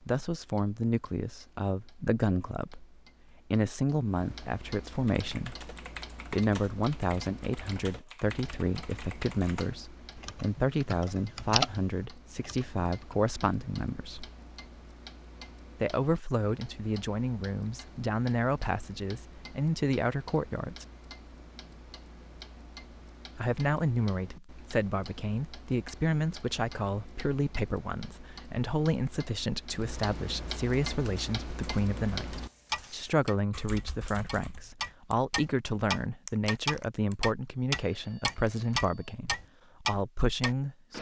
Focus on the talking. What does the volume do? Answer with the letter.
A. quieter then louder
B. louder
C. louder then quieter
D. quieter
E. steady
E.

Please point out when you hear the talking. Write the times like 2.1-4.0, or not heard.
0.1-14.3, 15.8-20.9, 23.4-40.9.